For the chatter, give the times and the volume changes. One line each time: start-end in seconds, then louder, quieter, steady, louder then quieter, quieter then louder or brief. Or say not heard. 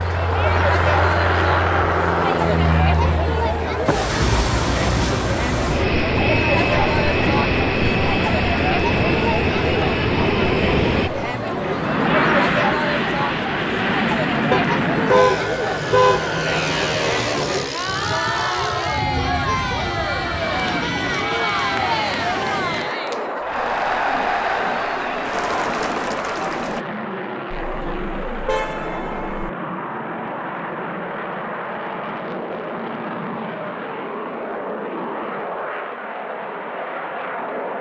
0.0-26.9 steady.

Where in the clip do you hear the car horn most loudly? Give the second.
15 s.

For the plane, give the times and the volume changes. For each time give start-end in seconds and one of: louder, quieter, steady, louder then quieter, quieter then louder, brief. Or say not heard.
0.0-37.7 quieter.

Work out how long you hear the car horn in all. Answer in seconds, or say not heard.
4 s.